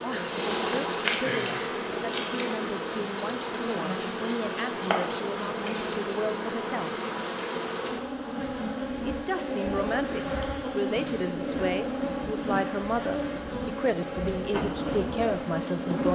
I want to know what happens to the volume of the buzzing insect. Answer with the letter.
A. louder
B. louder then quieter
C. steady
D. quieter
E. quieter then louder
C.